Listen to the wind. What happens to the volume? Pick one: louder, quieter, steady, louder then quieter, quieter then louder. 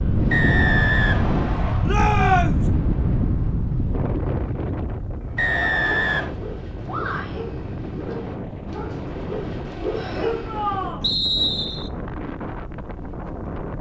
quieter.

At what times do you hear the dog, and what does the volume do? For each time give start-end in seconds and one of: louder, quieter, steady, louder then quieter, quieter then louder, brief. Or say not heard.
5.2-10.9 louder.